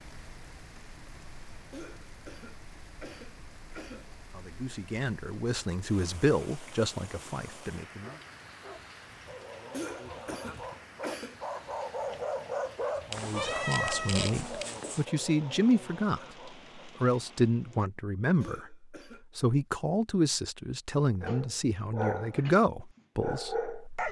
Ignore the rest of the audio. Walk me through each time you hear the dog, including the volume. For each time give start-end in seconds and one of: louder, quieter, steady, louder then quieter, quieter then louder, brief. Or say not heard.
8.0-16.8 louder then quieter
21.2-24.0 brief.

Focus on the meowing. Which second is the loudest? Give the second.
14 s.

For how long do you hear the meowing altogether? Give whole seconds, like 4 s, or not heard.
2 s.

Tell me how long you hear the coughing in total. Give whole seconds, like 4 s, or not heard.
5 s.